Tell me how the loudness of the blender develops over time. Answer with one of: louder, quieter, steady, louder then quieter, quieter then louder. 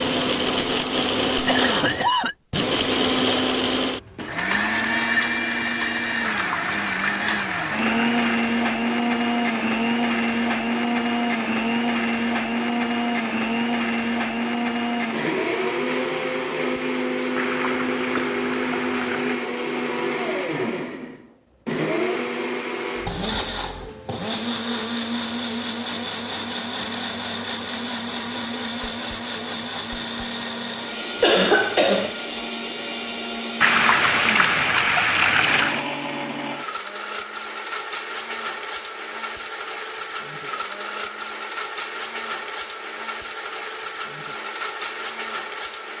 quieter.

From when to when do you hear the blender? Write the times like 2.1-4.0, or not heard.
0.0-45.9.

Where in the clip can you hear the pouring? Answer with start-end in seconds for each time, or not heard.
6.2-8.4, 17.4-19.4, 33.6-35.9.